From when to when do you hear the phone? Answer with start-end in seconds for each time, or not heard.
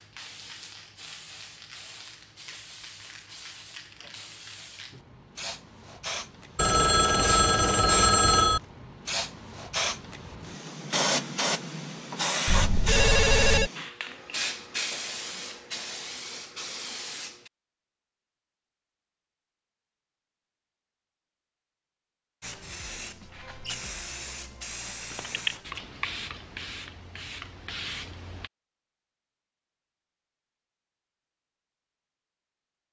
6.5-8.6, 12.4-13.7, 25.1-25.6.